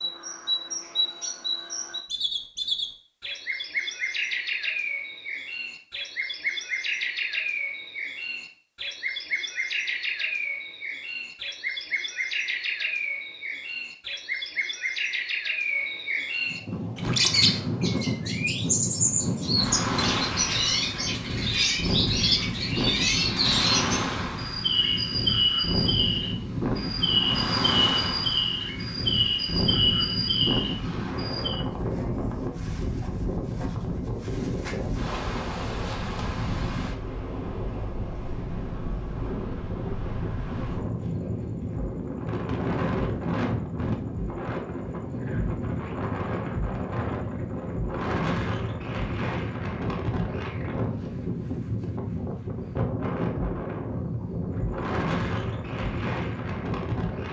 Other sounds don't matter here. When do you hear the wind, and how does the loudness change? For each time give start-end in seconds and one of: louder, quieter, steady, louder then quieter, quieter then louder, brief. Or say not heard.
16.4-57.2 steady.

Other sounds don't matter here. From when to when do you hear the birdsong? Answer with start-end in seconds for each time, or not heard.
0.0-31.6.